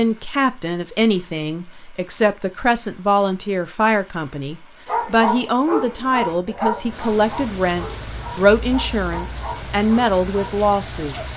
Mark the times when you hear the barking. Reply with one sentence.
The barking can be heard from 4.8 to 11.3 s.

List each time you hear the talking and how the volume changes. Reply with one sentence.
The talking can be heard from 0.0 to 11.3 s, at a steady volume.